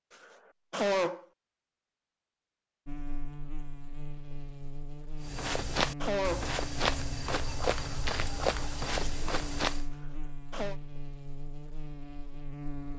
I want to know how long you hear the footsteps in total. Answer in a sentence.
You can hear the footsteps for 5 seconds altogether.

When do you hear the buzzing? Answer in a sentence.
You can hear the buzzing from 2.9 to 12.9 s.